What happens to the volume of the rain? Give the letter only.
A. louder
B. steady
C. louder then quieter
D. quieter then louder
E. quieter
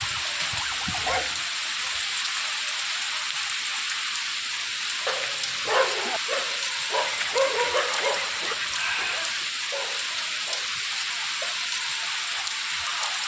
B.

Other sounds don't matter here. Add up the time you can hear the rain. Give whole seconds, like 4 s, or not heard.
13 s.